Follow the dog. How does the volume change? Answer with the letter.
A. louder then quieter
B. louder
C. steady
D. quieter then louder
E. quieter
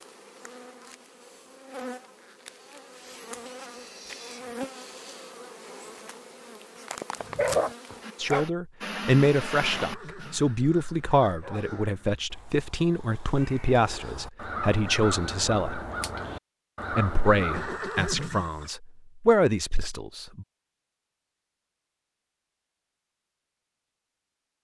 D.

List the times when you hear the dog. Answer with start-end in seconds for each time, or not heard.
7.3-12.2.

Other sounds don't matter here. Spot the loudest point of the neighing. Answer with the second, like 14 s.
18 s.